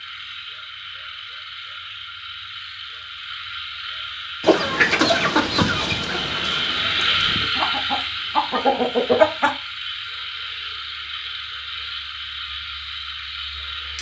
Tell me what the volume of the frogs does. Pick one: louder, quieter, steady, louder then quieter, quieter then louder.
louder then quieter.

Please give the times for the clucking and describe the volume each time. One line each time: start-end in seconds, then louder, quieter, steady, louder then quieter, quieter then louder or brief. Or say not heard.
4.4-9.5 quieter then louder.